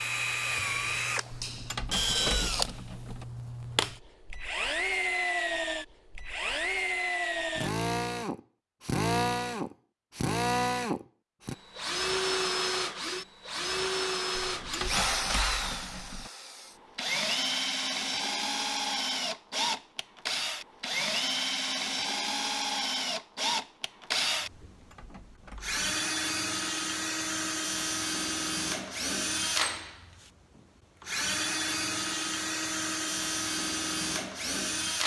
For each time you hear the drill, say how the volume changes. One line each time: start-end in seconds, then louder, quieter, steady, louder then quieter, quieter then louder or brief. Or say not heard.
0.0-35.0 steady.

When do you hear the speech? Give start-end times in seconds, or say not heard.
not heard.